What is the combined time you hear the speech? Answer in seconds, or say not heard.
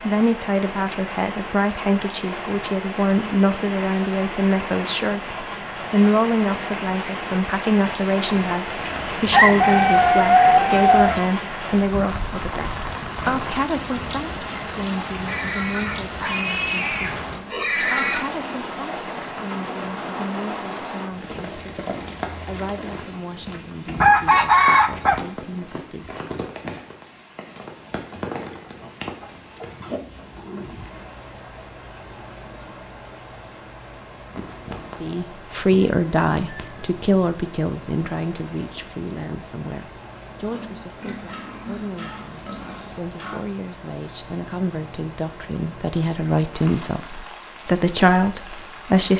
40 s.